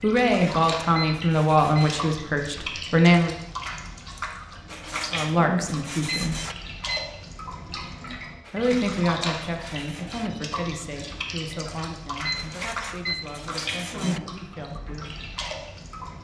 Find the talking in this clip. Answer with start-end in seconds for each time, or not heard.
0.0-3.4, 5.1-6.4, 8.5-15.2.